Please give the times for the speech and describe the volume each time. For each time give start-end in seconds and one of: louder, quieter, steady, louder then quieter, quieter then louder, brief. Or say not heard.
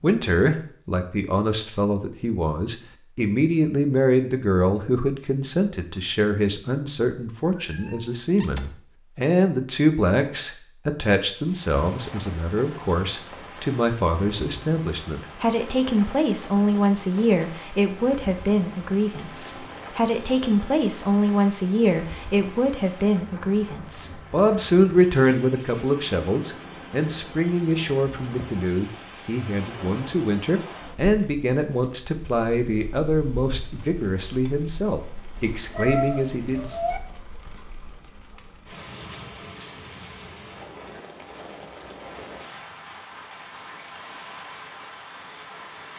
0.0-36.8 steady.